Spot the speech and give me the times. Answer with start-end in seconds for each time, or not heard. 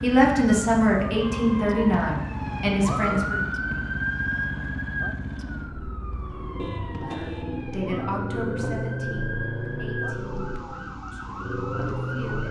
0.0-3.5, 6.8-12.4.